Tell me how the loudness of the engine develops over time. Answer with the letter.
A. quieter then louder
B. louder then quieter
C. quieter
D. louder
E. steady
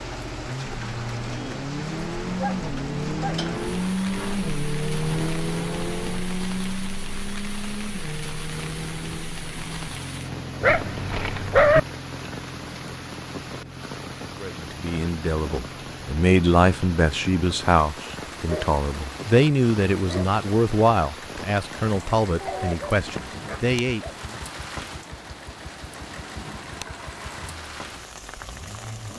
C.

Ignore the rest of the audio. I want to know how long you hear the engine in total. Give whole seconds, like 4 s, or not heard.
29 s.